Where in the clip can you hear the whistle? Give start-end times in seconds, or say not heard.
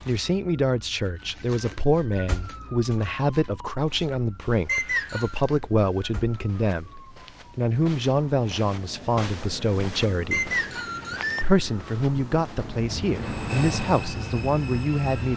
4.7-5.3, 10.3-11.4.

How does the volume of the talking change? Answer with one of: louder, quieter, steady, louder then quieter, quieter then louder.
steady.